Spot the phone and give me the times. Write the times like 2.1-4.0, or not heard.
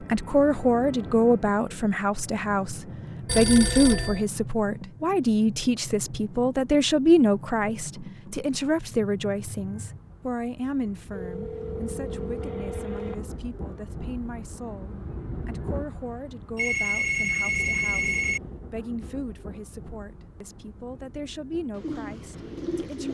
3.2-4.2, 11.1-13.3, 16.6-18.4.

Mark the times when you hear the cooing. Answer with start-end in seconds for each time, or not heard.
21.7-23.0.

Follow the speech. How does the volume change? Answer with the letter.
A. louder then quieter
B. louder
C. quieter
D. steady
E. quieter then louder
C.